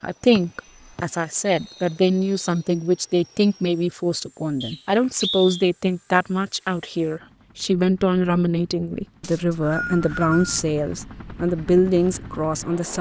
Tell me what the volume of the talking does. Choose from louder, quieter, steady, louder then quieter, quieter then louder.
steady.